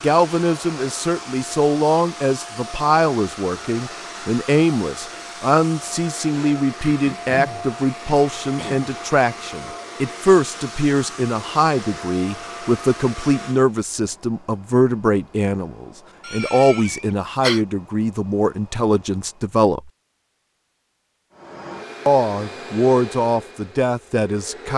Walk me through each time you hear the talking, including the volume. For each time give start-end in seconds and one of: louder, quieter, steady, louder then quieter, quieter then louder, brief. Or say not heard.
0.0-19.9 steady
22.1-24.7 brief.